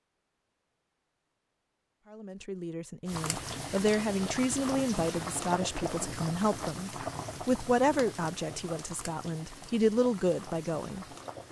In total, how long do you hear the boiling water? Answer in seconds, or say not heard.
8 s.